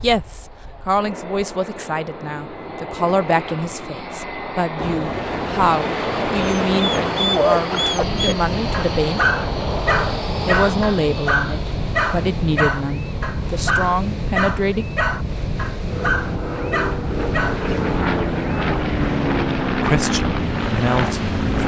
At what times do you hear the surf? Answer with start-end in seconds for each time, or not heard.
4.8-21.6.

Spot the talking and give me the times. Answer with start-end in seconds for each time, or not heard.
0.0-9.2, 10.4-14.8, 19.8-21.6.